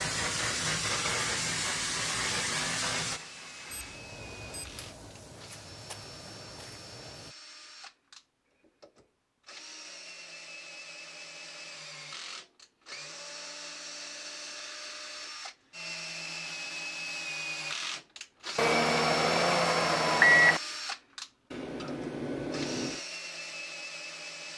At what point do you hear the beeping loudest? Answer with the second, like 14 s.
20 s.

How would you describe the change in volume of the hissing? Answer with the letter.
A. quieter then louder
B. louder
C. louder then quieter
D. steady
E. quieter
E.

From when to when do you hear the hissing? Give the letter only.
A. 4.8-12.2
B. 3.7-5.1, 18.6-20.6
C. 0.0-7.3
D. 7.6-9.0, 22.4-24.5
C.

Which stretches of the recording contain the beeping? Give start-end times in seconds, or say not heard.
3.7-5.1, 18.6-20.6.